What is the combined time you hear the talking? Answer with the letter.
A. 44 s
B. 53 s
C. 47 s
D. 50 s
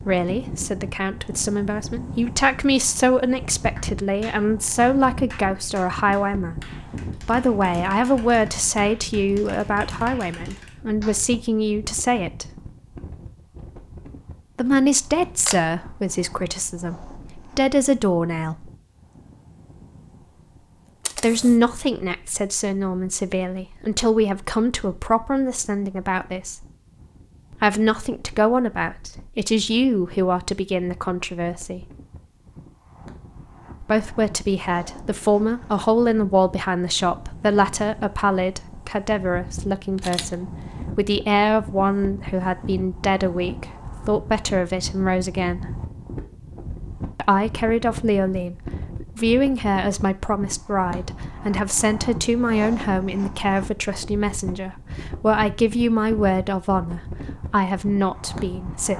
D.